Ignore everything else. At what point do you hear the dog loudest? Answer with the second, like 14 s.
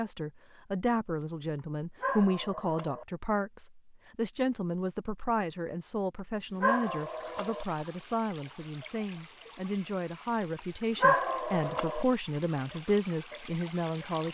11 s.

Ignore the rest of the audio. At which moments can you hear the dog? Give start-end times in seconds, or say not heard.
2.0-3.0, 6.6-7.7, 11.0-12.1.